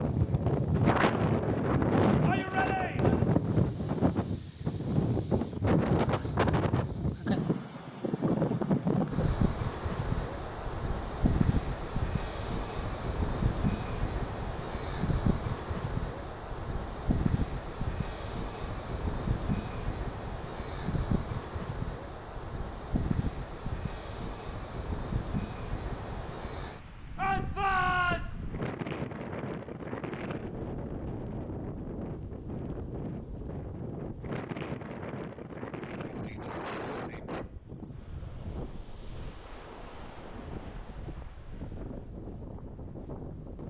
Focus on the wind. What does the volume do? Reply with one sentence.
The volume of the wind goes down.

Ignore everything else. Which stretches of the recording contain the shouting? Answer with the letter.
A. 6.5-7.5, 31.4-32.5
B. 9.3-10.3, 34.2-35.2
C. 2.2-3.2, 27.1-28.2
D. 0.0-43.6
C.